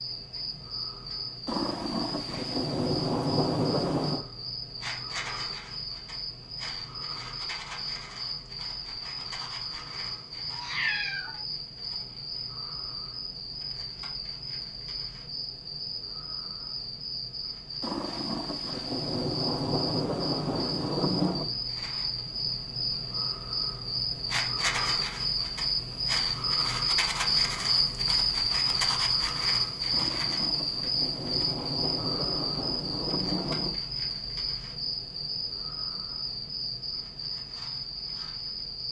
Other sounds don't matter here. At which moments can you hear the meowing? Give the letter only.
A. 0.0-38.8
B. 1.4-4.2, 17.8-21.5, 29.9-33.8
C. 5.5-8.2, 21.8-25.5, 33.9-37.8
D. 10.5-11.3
D.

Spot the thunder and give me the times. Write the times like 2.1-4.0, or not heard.
1.4-4.2, 17.8-21.5, 29.9-33.8.